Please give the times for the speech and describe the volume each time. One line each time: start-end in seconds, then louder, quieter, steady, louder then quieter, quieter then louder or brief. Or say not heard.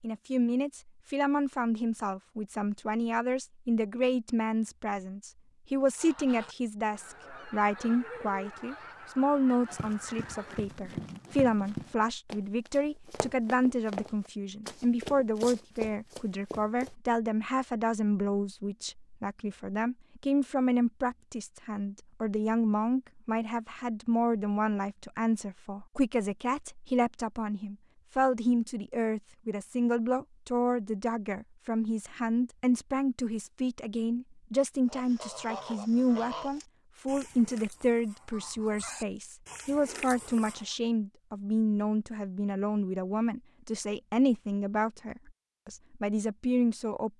0.0-47.1 steady.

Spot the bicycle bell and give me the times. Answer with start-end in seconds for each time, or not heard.
not heard.